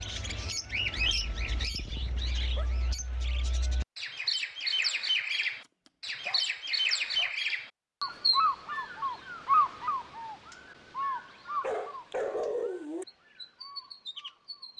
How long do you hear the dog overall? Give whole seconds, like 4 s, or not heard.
5 s.